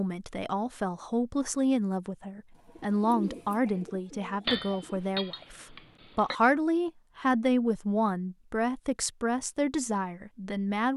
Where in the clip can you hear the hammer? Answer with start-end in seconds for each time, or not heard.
4.5-6.4.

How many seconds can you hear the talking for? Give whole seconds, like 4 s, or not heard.
11 s.